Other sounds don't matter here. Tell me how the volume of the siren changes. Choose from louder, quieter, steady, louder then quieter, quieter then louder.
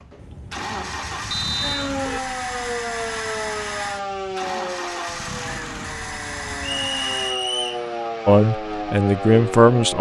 quieter then louder.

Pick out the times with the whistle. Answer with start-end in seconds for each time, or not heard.
1.3-1.9, 6.8-7.8.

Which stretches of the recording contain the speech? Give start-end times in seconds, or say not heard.
8.2-9.9.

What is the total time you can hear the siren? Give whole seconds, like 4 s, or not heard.
8 s.